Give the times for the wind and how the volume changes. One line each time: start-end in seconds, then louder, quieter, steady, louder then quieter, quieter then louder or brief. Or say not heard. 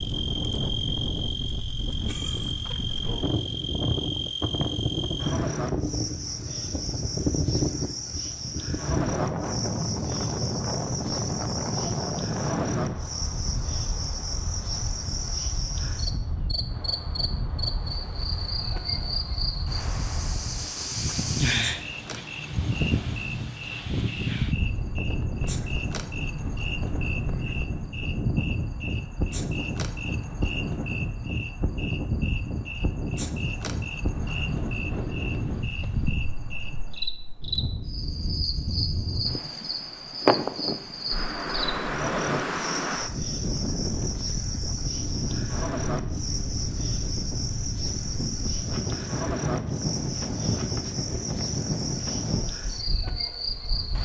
0.0-54.0 steady.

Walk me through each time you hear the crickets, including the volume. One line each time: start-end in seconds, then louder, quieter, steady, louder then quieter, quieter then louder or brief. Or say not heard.
0.0-54.0 steady.